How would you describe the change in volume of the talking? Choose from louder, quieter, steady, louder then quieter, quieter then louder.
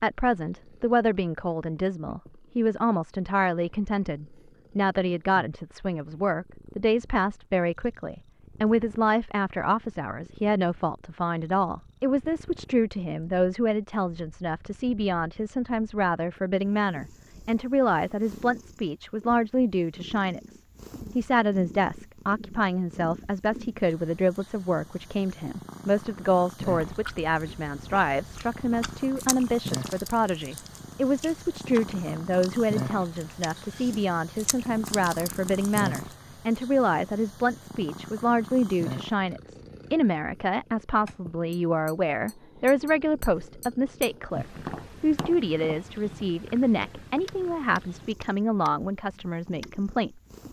steady.